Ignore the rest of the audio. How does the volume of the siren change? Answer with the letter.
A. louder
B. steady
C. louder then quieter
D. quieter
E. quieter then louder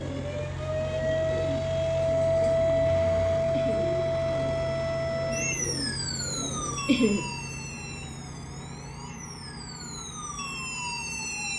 D.